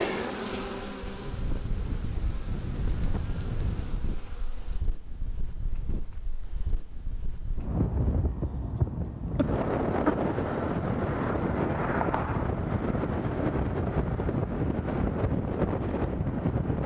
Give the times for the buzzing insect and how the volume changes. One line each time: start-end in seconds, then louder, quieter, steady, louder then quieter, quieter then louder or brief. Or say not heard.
0.0-4.8 quieter.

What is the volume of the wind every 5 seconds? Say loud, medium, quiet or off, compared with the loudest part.
medium, medium, loud, loud.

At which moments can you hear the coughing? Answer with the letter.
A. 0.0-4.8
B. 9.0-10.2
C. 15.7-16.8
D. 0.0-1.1
B.